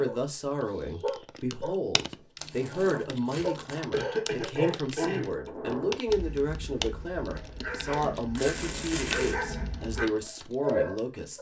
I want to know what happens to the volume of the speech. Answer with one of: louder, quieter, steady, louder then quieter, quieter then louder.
steady.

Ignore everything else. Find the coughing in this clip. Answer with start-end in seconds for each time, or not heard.
3.9-5.5.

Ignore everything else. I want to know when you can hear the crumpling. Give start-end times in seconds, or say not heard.
2.4-3.8, 8.3-9.4.